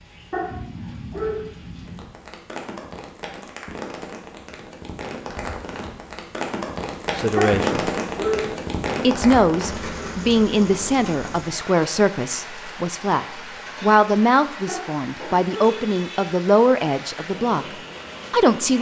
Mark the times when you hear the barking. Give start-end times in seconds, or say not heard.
0.3-1.4, 7.3-8.5, 14.7-15.8.